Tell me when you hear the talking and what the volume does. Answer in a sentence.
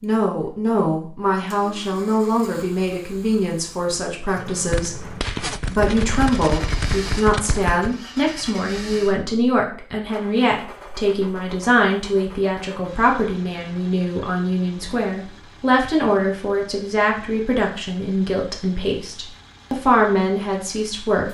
The talking can be heard from 0.0 to 21.2 s, at a steady volume.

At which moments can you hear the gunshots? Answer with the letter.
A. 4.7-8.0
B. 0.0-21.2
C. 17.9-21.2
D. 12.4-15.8
A.